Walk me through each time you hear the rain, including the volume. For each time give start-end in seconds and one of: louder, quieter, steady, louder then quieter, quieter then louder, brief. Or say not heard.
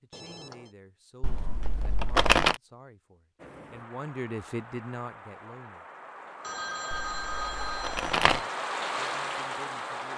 3.4-10.1 louder.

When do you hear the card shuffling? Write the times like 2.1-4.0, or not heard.
1.2-2.5, 6.9-8.4.